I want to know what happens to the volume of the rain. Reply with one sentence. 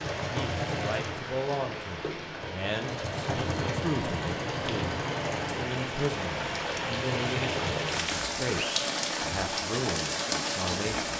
The volume of the rain goes up.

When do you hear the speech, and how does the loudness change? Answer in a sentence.
The speech can be heard from 0.2 to 11.1 s, at a steady volume.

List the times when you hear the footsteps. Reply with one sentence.
You can't hear the footsteps here.